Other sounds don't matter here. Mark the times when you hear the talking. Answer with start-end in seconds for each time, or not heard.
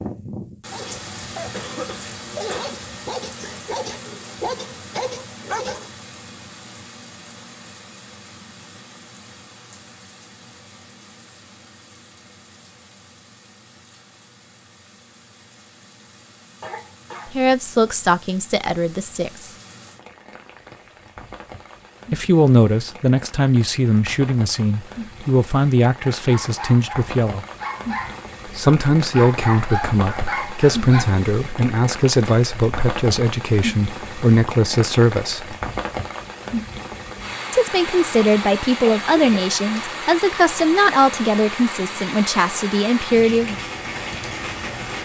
17.3-19.5, 22.1-27.4, 28.6-35.5, 37.5-43.5.